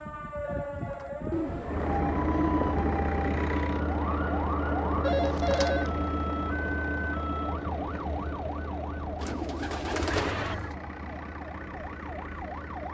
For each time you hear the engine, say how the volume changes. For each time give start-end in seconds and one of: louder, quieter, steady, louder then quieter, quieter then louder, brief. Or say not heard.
1.6-12.8 quieter.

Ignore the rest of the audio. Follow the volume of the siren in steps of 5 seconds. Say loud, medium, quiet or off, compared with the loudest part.
loud, loud, medium.